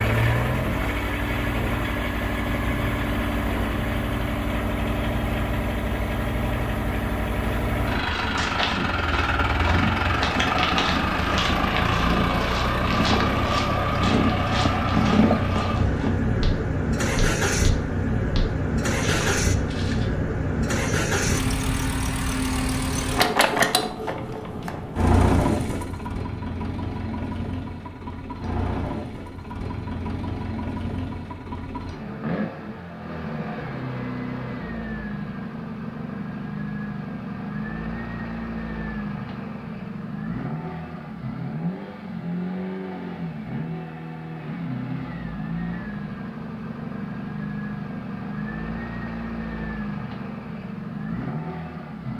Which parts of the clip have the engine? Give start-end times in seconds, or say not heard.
0.0-52.1.